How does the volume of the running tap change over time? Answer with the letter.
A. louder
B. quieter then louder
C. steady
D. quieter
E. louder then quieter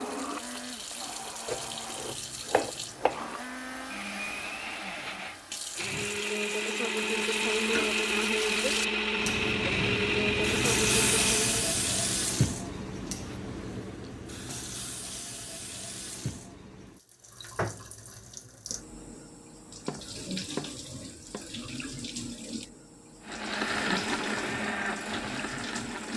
E.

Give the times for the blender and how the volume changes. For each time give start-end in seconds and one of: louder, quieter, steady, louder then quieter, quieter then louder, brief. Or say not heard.
0.0-11.7 louder
23.2-26.1 brief.